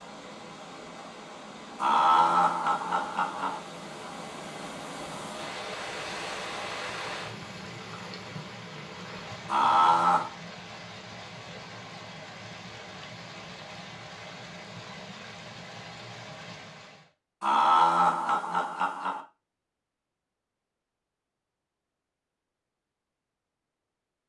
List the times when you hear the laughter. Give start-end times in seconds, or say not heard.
1.8-3.6, 9.4-10.3, 17.4-19.2.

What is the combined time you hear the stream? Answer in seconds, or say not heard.
17 s.